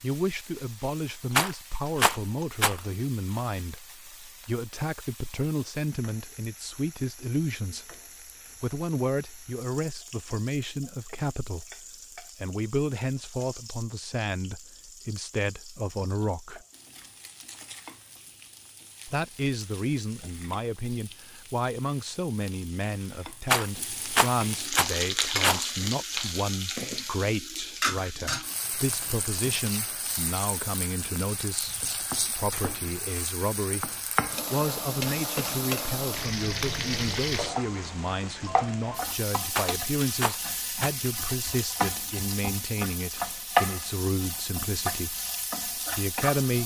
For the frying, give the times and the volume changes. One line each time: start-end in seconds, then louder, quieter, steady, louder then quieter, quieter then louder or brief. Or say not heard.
0.0-46.6 louder.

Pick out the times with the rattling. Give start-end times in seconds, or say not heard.
1.3-2.8, 23.4-25.6, 39.5-40.9.